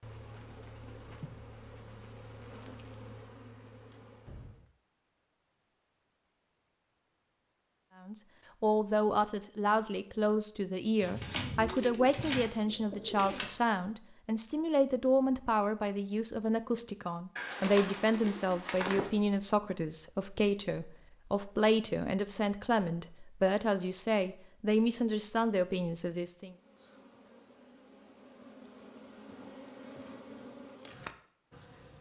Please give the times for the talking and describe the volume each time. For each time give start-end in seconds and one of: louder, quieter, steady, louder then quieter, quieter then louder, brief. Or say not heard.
8.0-26.6 steady.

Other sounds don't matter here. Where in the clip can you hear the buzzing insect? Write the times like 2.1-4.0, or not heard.
0.0-4.7, 26.4-31.9.